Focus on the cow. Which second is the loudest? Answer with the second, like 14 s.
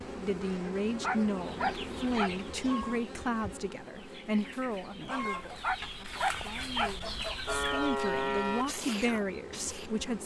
8 s.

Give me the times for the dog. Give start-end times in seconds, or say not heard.
0.7-2.3, 5.2-7.3.